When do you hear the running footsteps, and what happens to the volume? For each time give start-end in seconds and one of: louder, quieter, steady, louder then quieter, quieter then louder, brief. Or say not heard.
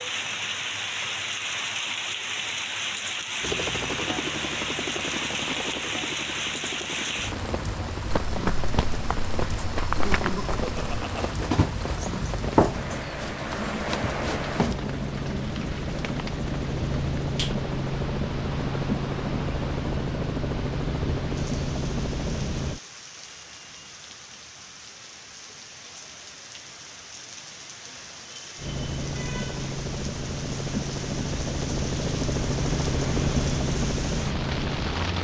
8.1-14.8 louder then quieter.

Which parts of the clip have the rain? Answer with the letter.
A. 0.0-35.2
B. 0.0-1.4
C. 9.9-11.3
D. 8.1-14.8
A.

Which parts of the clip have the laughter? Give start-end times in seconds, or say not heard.
9.9-11.3.